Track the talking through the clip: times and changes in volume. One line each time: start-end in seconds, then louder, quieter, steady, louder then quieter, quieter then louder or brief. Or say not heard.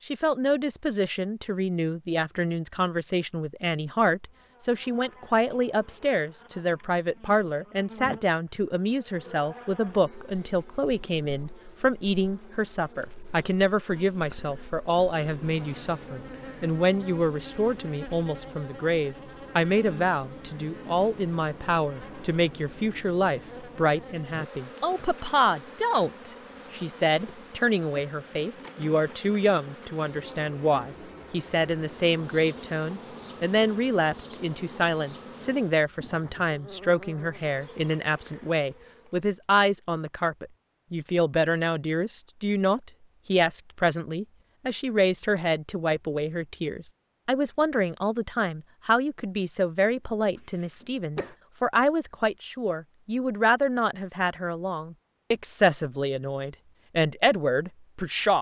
0.1-58.3 steady.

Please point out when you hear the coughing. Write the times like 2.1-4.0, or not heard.
50.4-51.4.